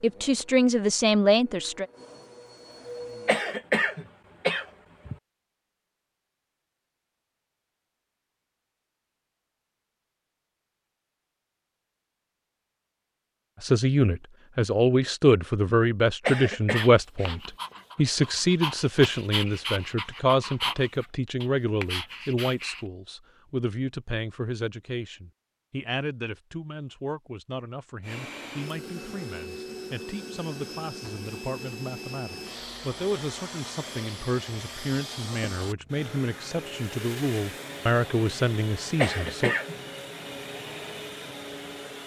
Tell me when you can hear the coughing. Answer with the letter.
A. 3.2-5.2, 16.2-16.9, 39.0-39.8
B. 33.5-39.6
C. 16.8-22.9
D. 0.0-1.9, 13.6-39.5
A.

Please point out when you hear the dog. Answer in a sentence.
You can hear the dog from 16.8 to 22.9 s.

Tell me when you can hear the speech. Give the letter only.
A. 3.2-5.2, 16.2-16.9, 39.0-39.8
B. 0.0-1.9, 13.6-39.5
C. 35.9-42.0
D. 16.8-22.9
B.